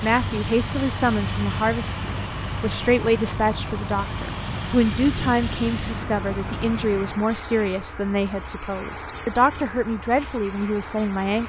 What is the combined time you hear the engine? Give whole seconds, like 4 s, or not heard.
7 s.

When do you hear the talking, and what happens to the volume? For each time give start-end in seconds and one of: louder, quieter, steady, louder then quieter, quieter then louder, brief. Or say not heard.
0.0-11.4 steady.